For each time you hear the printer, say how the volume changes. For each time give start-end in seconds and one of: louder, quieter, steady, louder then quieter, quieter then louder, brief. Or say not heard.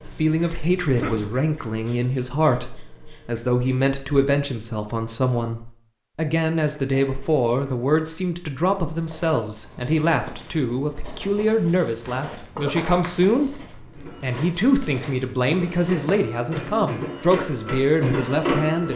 13.9-18.9 louder.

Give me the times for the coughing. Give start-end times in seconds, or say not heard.
0.8-1.4, 12.6-13.7.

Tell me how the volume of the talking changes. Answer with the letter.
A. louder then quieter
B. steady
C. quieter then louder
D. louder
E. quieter
B.